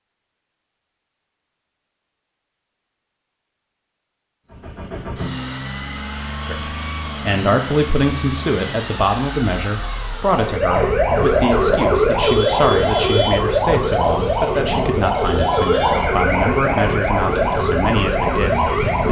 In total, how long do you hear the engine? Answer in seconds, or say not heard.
6 s.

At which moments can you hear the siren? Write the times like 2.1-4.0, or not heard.
10.2-19.0.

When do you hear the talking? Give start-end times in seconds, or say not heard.
6.5-19.0.